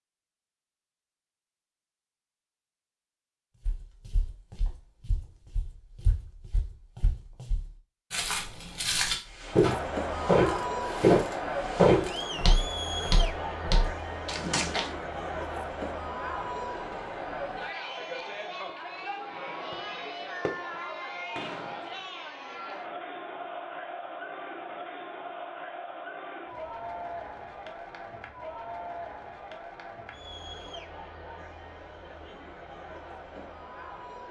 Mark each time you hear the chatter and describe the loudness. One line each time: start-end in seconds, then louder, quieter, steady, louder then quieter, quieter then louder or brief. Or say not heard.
9.5-34.2 quieter.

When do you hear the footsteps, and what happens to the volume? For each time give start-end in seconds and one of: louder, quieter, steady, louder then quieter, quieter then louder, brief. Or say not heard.
3.6-14.9 louder then quieter.